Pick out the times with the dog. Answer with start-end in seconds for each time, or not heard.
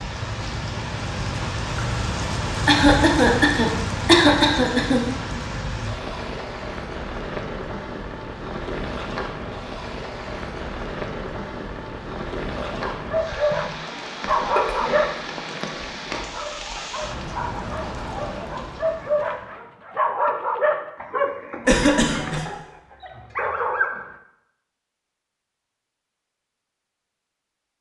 12.6-24.1.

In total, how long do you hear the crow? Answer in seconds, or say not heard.
not heard.